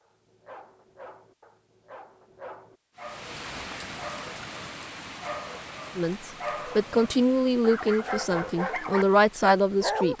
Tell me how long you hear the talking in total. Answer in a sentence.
You can hear the talking for 4 seconds altogether.